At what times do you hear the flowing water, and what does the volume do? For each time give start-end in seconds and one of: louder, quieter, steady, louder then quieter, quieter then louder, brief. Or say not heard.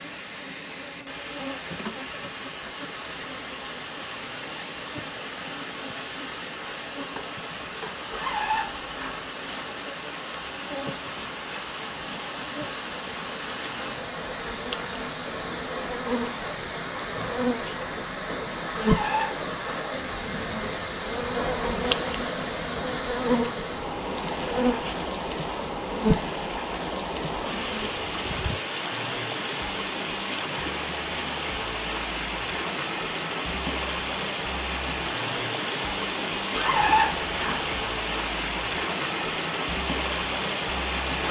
0.0-41.2 louder.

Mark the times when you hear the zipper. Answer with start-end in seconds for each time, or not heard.
8.1-9.2, 18.8-19.8, 36.5-37.6.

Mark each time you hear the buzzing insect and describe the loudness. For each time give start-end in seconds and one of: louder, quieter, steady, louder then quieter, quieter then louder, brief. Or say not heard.
0.0-26.2 louder
27.4-28.6 brief.